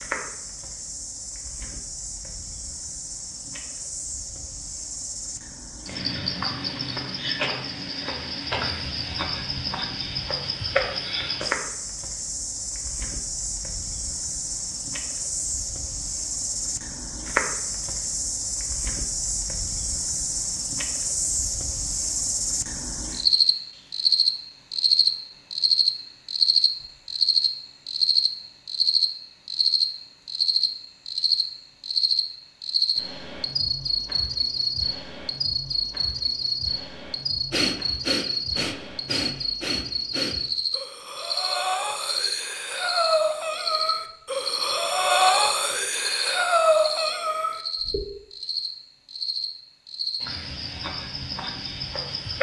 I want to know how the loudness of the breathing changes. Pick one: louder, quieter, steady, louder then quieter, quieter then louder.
louder.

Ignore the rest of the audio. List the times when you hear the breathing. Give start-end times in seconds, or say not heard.
37.5-48.0.